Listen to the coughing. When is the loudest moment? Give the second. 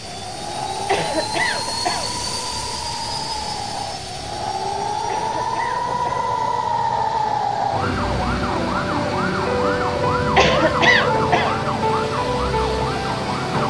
11 s.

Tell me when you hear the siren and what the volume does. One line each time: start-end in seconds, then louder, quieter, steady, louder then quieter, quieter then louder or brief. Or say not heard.
0.0-13.6 louder.